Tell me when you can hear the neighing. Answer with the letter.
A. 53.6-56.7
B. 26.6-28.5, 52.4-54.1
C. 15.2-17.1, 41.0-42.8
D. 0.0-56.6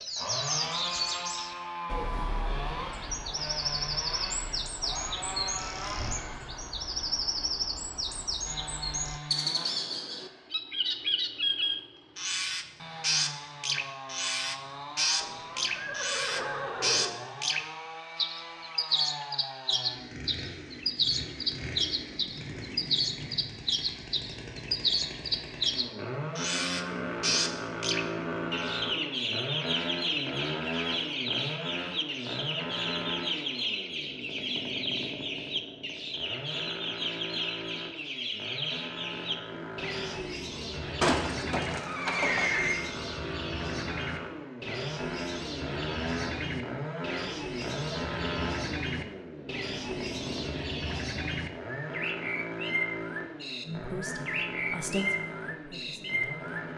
C.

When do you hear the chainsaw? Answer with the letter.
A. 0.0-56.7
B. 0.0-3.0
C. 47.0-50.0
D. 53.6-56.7
A.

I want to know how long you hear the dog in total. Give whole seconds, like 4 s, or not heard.
not heard.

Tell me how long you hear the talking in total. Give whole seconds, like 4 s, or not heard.
3 s.